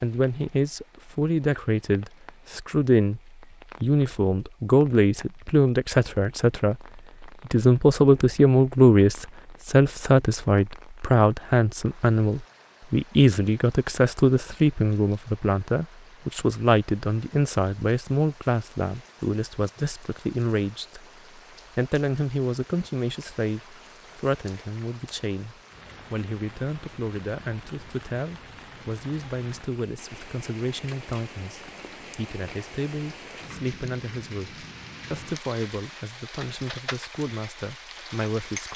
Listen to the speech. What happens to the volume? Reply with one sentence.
The loudness of the speech goes down.